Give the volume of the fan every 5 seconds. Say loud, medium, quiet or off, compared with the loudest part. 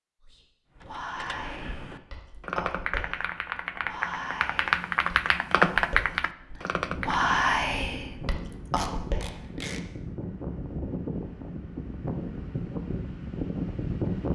off, medium, loud.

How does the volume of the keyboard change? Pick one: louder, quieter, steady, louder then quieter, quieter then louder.
louder.